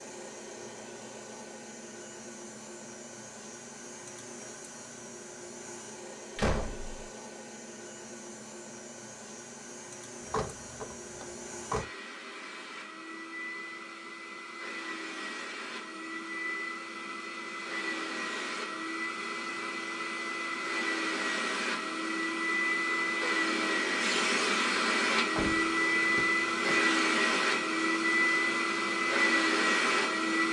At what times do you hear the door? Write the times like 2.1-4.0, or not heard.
6.3-7.0, 10.3-11.8, 25.4-26.8.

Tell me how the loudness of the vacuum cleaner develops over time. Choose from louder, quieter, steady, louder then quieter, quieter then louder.
louder.